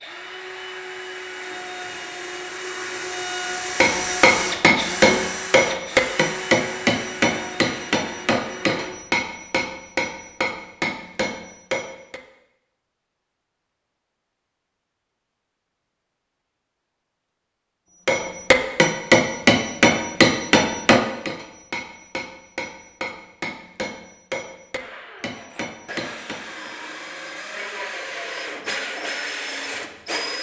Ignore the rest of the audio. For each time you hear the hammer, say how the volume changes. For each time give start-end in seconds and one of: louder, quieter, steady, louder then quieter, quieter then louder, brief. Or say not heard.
3.8-12.2 quieter
18.1-26.8 quieter.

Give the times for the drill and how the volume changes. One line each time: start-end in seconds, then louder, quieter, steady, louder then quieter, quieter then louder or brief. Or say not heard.
0.0-8.9 louder then quieter
24.8-30.3 louder.